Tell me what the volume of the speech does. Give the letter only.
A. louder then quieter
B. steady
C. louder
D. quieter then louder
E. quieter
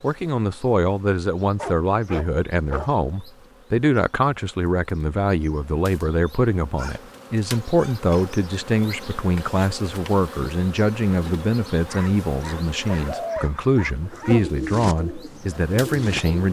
B.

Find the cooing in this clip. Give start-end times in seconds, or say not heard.
12.8-16.4.